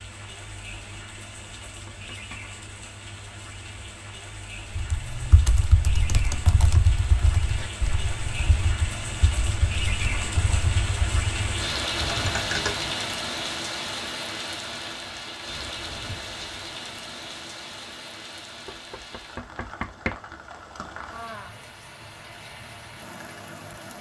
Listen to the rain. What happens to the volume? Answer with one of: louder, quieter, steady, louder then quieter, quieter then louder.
louder then quieter.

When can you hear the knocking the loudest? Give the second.
20 s.